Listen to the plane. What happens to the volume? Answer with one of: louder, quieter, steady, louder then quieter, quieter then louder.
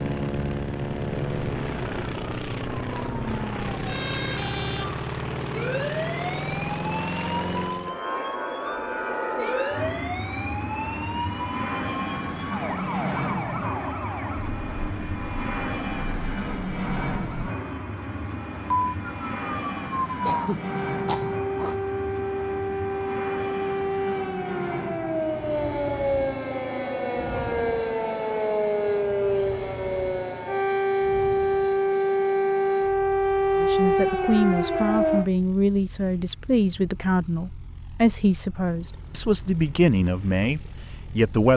quieter.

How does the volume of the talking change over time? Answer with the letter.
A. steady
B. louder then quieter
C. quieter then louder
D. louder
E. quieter
A.